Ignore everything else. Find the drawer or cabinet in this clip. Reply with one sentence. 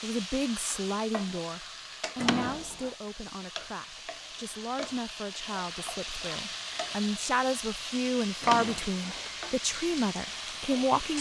The drawer or cabinet can be heard from 2.1 to 2.9 s and from 8.4 to 9.3 s.